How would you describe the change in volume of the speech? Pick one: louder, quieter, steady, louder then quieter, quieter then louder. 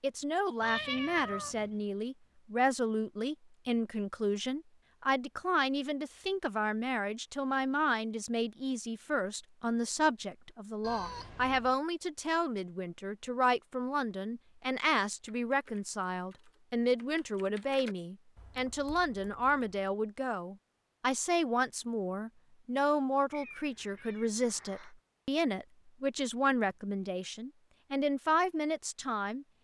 steady.